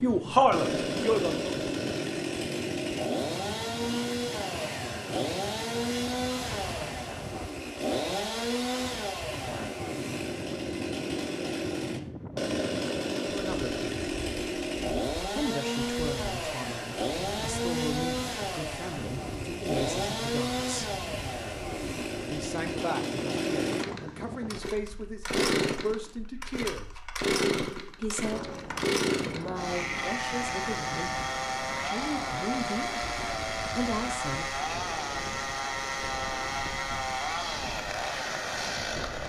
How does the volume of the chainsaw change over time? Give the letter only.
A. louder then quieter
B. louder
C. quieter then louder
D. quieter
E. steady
E.